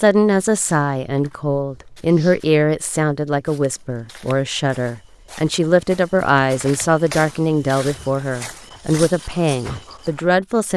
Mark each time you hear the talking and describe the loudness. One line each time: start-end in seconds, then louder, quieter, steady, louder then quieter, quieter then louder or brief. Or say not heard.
0.0-10.7 steady.